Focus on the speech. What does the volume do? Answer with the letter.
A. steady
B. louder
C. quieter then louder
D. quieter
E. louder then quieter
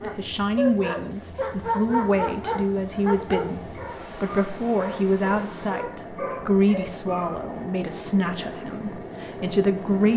A.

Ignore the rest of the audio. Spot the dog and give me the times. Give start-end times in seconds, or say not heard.
0.0-7.5.